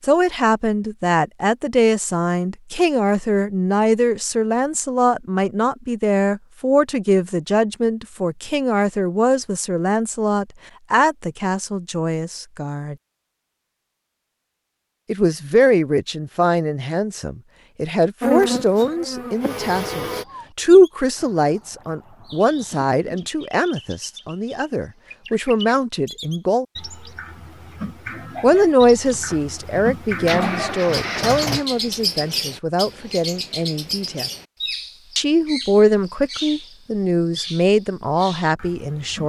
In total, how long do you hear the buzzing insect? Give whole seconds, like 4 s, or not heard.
2 s.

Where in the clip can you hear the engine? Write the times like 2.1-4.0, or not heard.
29.1-31.6.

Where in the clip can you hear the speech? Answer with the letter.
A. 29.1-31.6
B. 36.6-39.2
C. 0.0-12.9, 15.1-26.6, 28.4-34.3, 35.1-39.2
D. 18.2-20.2
C.